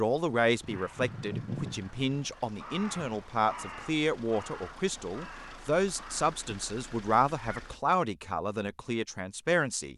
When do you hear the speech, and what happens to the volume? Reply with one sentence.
The speech can be heard from 0.0 to 9.9 s, at a steady volume.